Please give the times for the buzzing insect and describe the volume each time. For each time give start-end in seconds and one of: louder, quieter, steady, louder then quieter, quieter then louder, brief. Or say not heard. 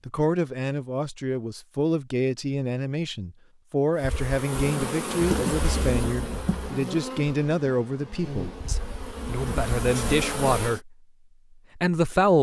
4.0-10.8 quieter then louder.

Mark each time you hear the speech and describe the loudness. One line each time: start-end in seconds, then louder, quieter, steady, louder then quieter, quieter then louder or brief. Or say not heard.
0.1-10.9 steady
11.8-12.3 brief.